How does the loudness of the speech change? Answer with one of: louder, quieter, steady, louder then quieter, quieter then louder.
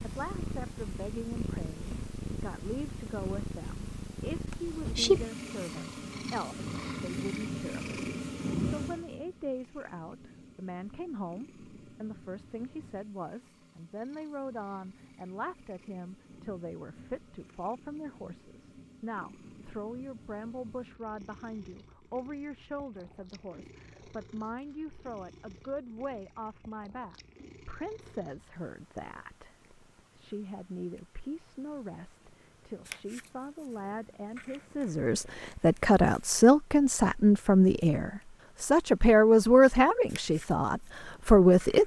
louder.